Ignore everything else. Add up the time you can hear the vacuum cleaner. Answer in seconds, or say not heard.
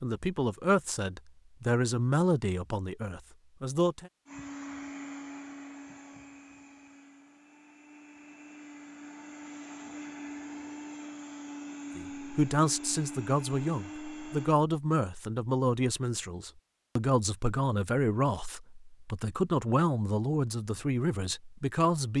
10 s.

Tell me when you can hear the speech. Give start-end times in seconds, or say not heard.
0.0-4.1, 11.9-22.1.